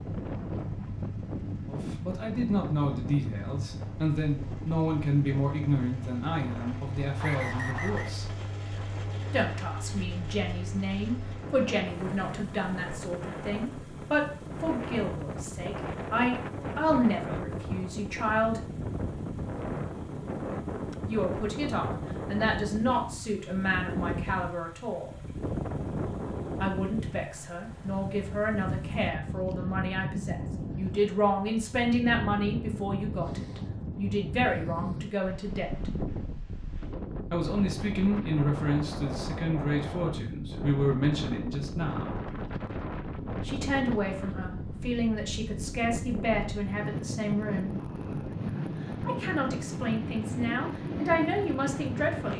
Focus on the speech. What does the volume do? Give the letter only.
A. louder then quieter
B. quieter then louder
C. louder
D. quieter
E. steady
E.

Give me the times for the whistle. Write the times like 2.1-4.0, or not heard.
7.2-8.2.